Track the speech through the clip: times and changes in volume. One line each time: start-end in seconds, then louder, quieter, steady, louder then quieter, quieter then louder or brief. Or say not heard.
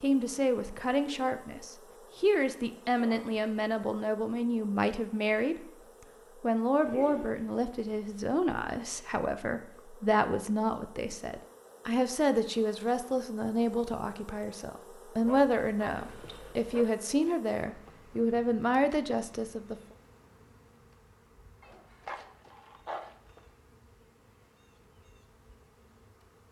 0.0-5.7 steady
6.4-19.8 steady.